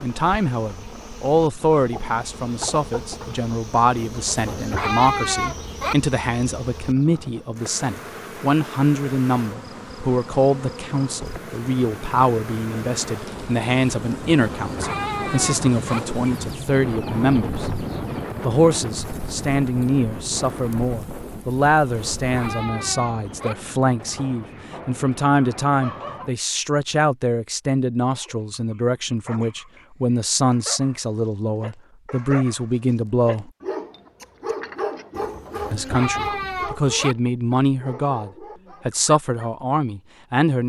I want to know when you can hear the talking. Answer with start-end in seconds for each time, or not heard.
0.0-17.6, 18.4-33.5, 35.7-40.6.